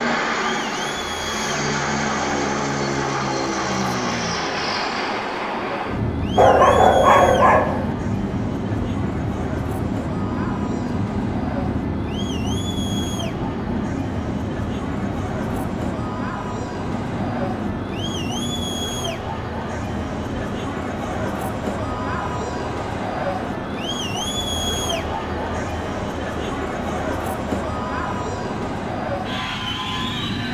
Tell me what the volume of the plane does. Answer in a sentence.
The loudness of the plane goes down.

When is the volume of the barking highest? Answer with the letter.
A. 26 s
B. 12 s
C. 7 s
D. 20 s
C.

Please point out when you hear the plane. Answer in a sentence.
The plane can be heard from 0.0 to 30.4 s.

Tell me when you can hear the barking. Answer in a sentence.
You can hear the barking from 6.3 to 7.9 s.